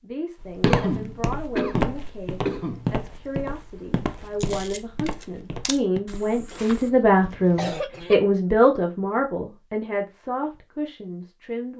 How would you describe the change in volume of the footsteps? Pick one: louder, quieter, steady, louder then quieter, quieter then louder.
quieter.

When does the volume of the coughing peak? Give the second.
1 s.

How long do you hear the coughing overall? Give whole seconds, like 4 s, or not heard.
4 s.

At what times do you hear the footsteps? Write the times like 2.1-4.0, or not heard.
0.4-6.9.